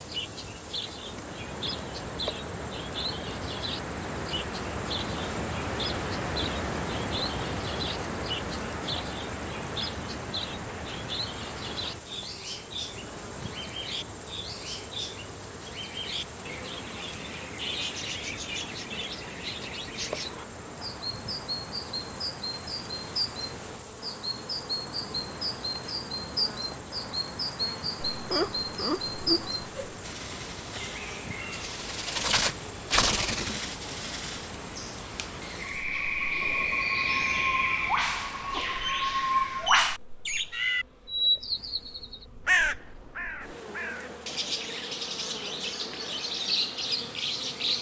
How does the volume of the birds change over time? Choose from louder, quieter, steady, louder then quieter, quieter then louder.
louder.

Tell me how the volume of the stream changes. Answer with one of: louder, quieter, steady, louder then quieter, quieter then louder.
quieter.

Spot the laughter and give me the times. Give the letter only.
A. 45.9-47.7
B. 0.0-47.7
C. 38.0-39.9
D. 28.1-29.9
D.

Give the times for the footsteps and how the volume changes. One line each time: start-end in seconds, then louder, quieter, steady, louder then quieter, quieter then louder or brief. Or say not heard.
not heard.